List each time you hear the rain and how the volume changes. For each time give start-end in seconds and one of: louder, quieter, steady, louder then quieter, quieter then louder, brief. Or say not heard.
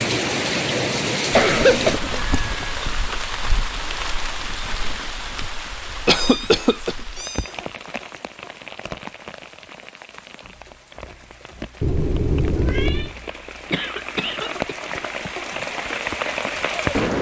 0.0-17.1 quieter then louder.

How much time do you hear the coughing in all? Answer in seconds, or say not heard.
4 s.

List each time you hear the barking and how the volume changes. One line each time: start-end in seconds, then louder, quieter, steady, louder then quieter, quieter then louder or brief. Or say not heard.
not heard.